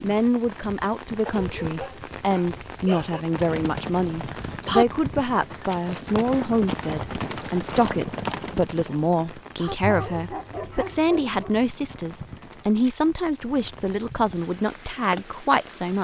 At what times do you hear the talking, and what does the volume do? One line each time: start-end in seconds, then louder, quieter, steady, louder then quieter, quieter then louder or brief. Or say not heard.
0.0-15.9 steady.